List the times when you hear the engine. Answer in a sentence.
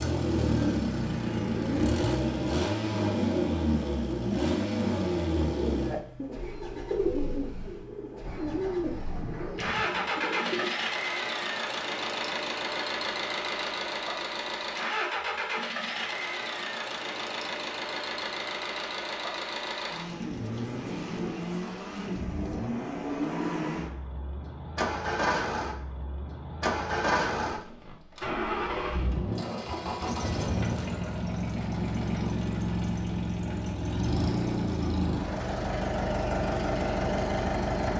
The engine can be heard from 0.0 to 37.9 s.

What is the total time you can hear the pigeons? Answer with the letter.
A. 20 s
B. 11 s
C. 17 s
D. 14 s
B.